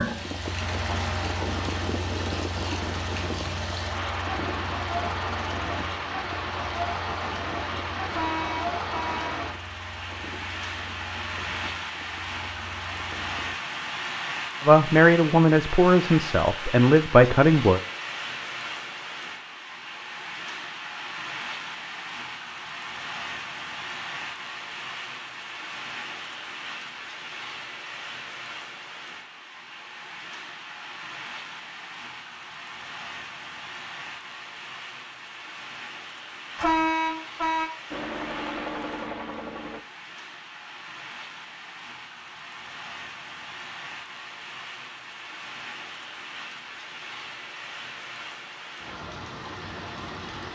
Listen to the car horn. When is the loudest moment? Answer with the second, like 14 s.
37 s.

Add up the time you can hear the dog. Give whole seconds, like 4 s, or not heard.
not heard.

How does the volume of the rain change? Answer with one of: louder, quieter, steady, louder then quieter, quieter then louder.
quieter.